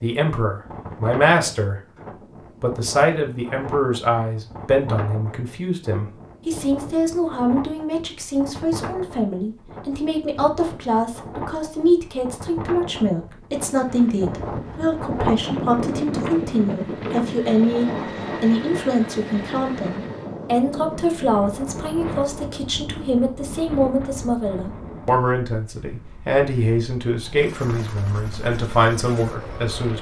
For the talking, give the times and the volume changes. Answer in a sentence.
You can hear the talking briefly from 0.0 to 1.8 s; and from 2.6 to 29.9 s, at a steady volume.